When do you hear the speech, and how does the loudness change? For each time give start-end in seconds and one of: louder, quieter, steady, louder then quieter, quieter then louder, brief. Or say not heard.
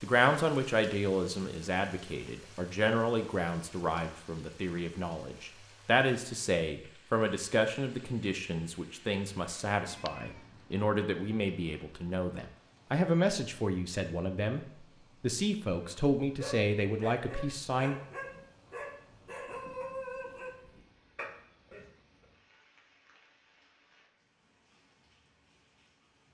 0.0-18.0 steady.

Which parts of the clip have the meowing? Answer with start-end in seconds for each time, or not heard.
9.8-10.5.